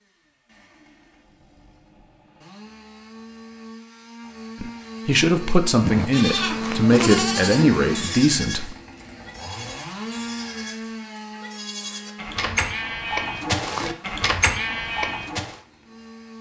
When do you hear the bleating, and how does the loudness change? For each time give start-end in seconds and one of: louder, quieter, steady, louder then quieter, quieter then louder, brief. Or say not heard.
5.8-15.6 quieter then louder.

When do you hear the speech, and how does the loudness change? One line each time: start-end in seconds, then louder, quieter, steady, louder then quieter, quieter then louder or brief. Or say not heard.
4.6-8.8 steady.